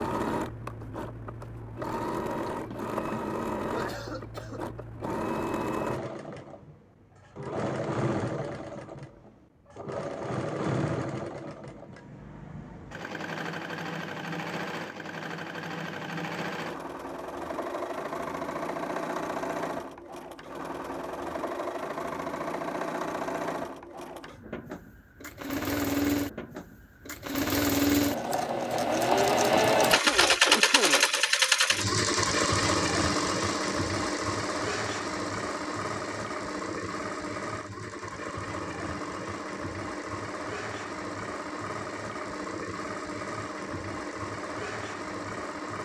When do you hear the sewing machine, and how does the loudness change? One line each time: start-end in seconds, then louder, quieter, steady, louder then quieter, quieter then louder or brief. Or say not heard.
0.0-45.8 louder then quieter.